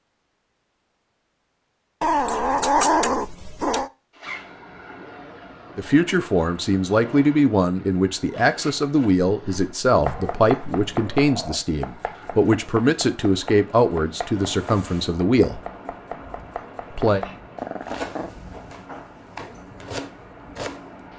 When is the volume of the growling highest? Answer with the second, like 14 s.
3 s.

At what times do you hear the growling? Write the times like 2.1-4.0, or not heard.
2.0-3.9, 9.2-11.7, 17.1-18.3.